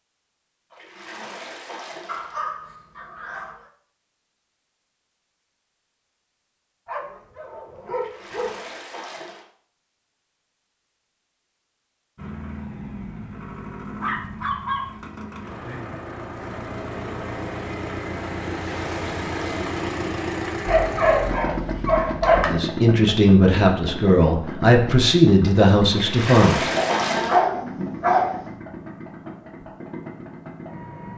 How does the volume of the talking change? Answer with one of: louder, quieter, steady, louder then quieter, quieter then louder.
steady.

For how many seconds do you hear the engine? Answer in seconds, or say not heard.
19 s.